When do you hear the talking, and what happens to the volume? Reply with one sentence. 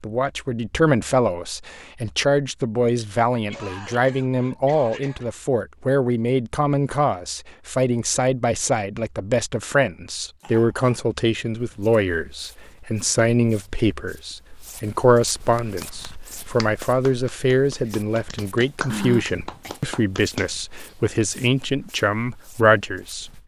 You can hear the talking from 0.0 to 23.2 s, at a steady volume.